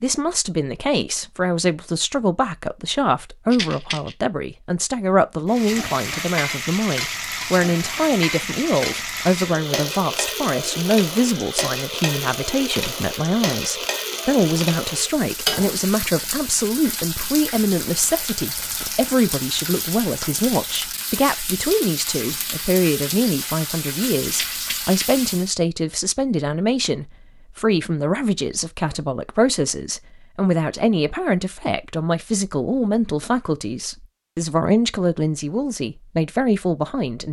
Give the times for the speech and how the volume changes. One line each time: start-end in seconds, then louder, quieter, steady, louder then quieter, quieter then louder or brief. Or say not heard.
0.0-37.2 steady.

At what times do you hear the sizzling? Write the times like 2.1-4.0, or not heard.
5.5-25.6.